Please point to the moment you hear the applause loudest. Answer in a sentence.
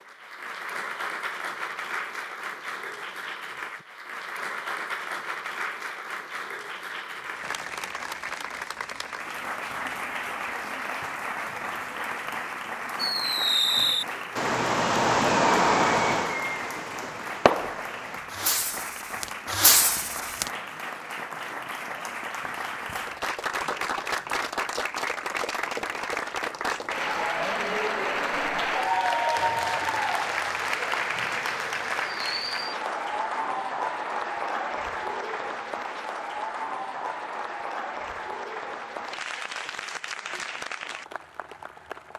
The volume of the applause peaks at 29 seconds.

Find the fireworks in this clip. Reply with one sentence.
The fireworks can be heard from 12.9 to 20.5 s.